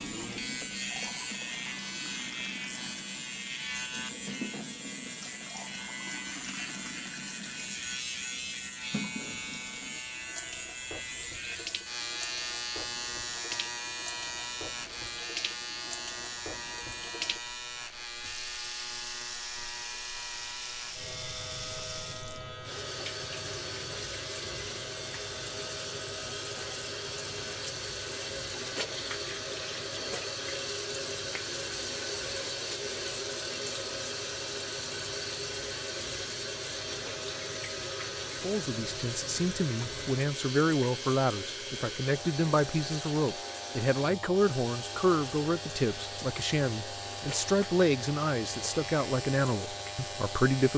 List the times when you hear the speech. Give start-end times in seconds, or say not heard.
38.4-50.7.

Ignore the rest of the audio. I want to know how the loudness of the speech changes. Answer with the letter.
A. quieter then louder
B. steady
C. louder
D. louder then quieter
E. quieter
B.